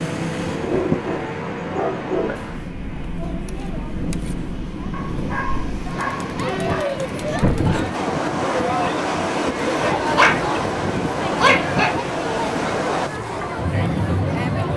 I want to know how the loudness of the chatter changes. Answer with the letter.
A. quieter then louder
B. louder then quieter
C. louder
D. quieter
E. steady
C.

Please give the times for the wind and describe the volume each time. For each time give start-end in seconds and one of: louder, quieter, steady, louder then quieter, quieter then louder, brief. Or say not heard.
0.0-14.7 louder.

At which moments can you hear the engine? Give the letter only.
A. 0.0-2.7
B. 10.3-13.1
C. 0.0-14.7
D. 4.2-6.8
A.